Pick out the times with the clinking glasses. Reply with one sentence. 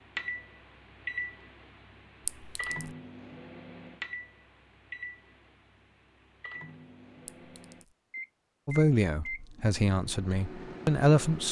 You can hear the clinking glasses from 2.2 to 3.0 s and from 7.2 to 8.0 s.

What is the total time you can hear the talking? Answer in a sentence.
The talking can be heard for 3 seconds in total.